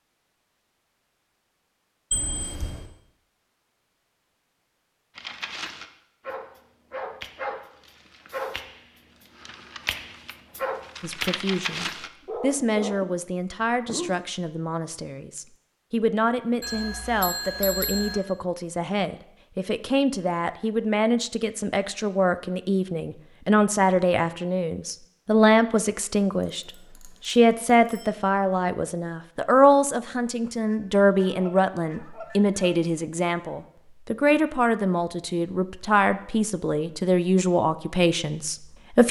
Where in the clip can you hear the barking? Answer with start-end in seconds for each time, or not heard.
5.2-14.2.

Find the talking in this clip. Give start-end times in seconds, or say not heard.
11.0-39.0.